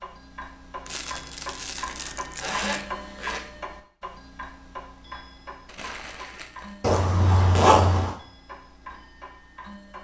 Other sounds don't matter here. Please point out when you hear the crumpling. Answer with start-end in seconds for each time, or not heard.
0.8-2.9, 5.7-6.8.